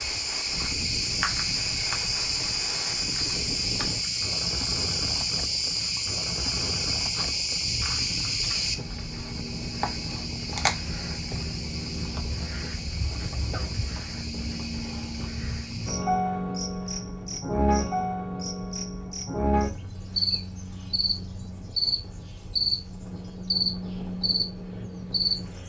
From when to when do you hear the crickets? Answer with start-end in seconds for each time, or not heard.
0.0-25.6.